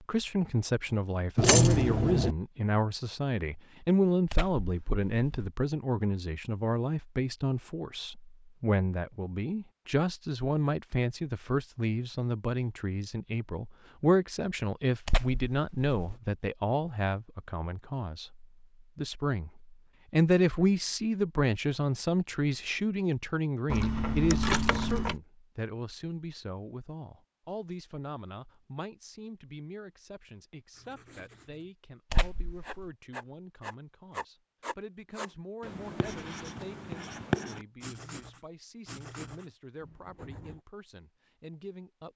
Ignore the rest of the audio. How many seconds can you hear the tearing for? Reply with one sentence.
The tearing can be heard for 3 seconds in total.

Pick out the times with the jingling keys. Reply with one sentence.
You can hear the jingling keys from 1.4 to 2.4 s and from 23.6 to 25.1 s.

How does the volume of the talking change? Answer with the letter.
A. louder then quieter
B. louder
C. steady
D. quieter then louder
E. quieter
E.